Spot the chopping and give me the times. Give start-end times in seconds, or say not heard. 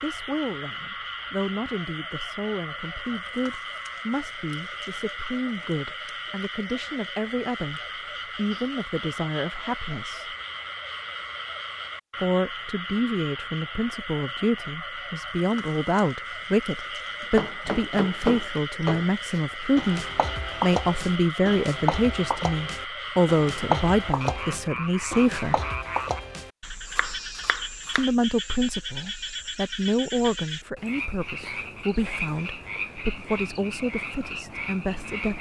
17.4-28.1.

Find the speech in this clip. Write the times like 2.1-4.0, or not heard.
0.0-10.3, 12.2-25.6, 27.9-35.3.